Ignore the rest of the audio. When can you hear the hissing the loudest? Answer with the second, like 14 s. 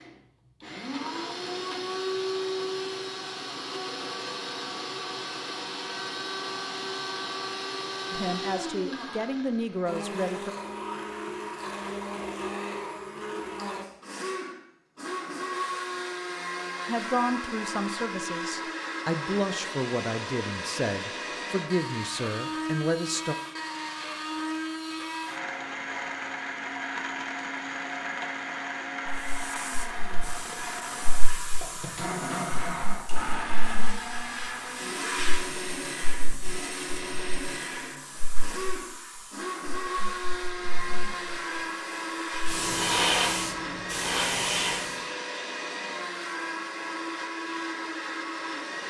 43 s.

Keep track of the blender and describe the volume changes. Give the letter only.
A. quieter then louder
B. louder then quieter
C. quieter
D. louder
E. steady
E.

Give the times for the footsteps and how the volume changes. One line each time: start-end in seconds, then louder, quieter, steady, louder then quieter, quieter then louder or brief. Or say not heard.
not heard.